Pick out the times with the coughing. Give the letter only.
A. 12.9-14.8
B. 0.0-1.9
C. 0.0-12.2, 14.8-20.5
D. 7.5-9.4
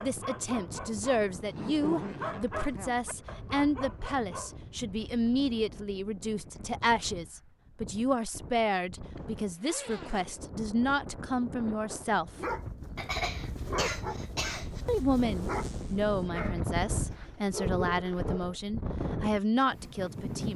A.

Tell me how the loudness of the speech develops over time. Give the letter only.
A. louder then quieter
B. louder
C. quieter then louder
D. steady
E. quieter
D.